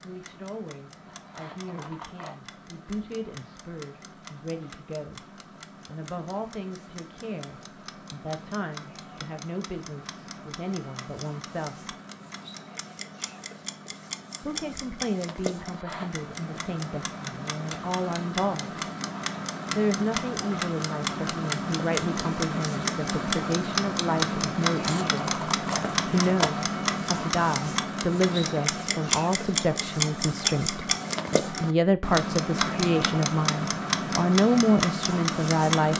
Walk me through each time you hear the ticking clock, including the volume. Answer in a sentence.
The ticking clock can be heard from 0.0 to 35.9 s, getting louder.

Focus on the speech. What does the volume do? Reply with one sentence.
The volume of the speech goes up.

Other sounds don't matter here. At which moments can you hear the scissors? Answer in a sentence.
You can hear the scissors from 1.1 to 2.4 s, from 15.6 to 16.2 s and from 24.7 to 26.5 s.